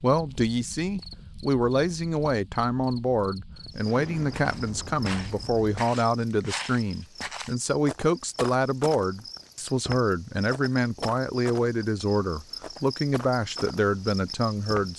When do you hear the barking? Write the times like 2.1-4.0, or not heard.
not heard.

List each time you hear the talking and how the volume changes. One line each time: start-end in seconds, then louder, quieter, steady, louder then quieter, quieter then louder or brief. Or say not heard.
0.0-14.9 steady.